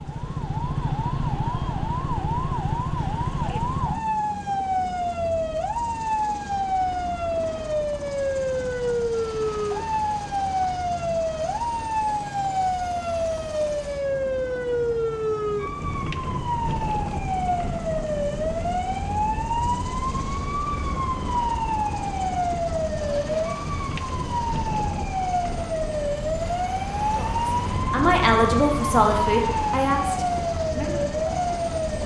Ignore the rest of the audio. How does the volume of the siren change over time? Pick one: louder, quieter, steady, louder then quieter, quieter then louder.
steady.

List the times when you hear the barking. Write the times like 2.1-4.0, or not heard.
not heard.